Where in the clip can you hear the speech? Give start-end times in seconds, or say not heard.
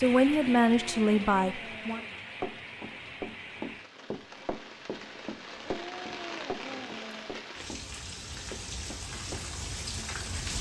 0.0-2.0.